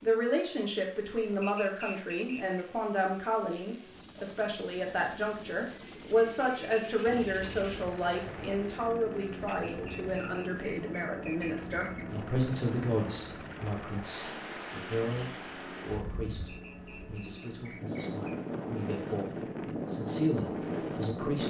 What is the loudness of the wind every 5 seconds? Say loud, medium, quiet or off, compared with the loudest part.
off, quiet, medium, medium, loud.